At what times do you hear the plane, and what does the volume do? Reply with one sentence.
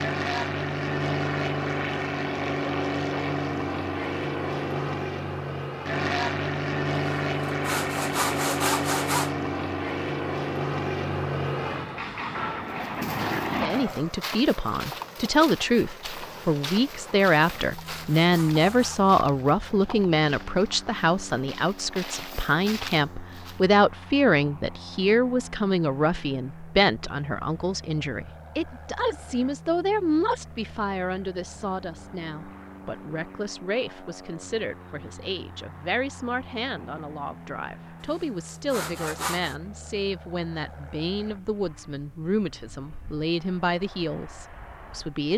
The plane can be heard from 0.0 to 45.3 s, getting quieter.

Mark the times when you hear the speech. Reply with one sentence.
You can hear the speech from 13.5 to 45.3 s.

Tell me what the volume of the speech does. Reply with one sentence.
The loudness of the speech goes down.